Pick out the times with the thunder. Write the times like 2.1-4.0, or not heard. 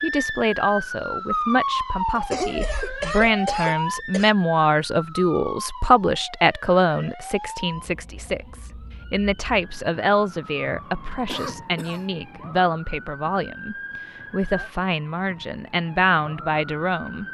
not heard.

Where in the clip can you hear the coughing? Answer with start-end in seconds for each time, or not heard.
2.1-4.3, 11.2-12.1.